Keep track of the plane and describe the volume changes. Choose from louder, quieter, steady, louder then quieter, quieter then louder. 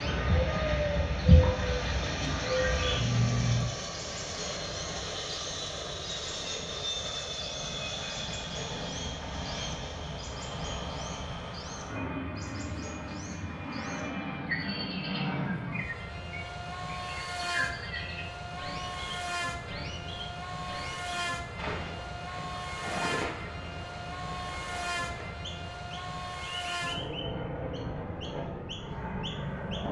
steady.